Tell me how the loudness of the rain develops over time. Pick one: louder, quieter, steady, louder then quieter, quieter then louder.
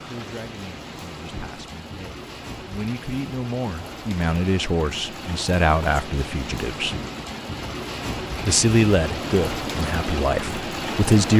louder.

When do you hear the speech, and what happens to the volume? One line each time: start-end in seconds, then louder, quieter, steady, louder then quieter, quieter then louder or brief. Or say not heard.
0.0-7.0 louder
8.4-11.3 brief.